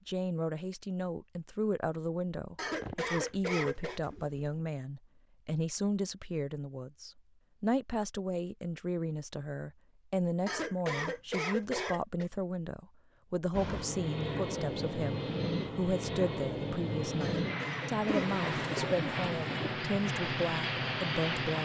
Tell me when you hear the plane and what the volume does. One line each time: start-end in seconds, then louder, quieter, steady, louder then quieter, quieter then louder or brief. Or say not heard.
13.5-21.6 steady.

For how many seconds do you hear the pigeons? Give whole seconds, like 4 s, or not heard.
3 s.